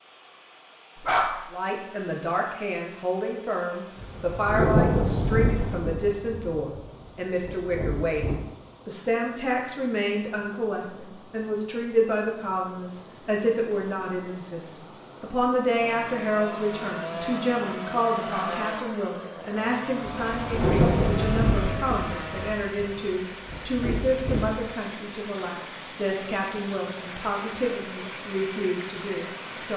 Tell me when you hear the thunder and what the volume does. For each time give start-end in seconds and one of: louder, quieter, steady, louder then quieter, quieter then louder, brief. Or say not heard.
4.0-8.4 quieter then louder
20.2-24.6 quieter then louder.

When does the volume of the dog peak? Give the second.
1 s.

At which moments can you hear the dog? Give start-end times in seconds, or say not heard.
0.9-1.4, 18.2-18.6.